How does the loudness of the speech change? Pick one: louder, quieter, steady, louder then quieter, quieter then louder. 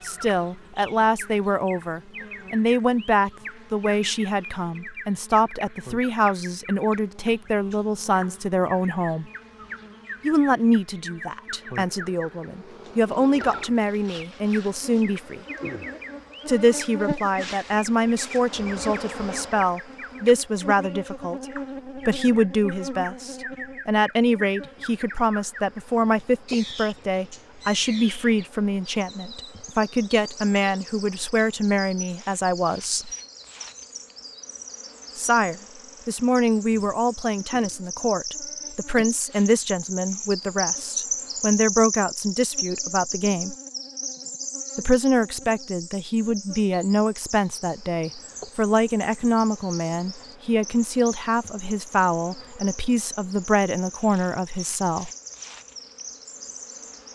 steady.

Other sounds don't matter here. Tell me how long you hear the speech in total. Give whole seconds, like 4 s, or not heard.
50 s.